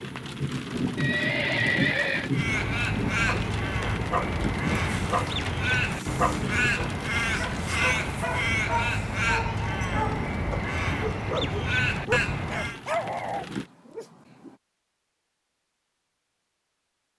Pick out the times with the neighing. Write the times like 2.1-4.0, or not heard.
0.9-2.3.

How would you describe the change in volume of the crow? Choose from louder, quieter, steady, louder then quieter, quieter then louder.
steady.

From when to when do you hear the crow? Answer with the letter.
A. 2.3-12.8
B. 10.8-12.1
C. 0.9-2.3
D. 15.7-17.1
A.